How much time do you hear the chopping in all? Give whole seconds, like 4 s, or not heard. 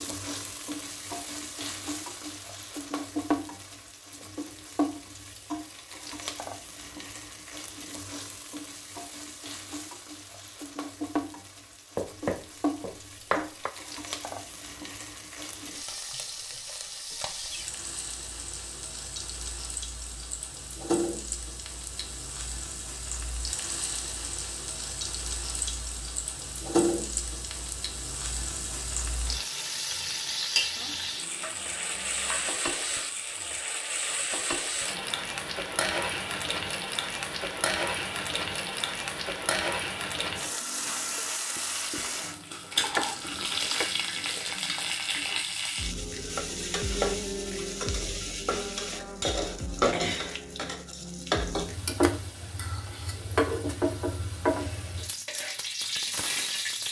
5 s.